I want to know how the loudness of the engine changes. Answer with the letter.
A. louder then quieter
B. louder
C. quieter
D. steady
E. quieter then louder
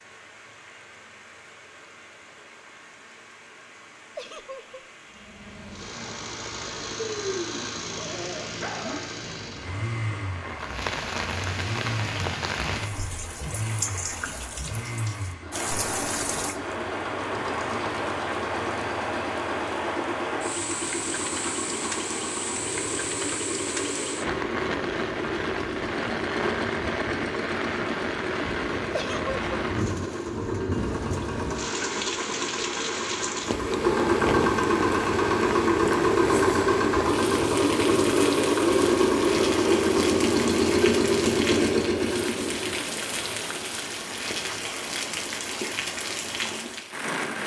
B.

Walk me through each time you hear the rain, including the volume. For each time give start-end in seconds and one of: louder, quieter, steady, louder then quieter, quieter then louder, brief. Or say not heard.
0.0-47.4 louder.